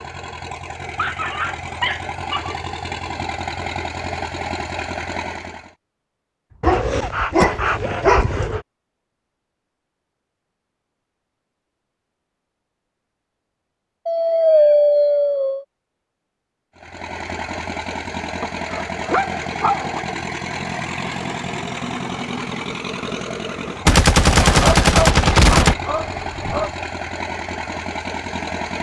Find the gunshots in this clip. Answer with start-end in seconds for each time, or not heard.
7.4-7.9, 23.9-25.8.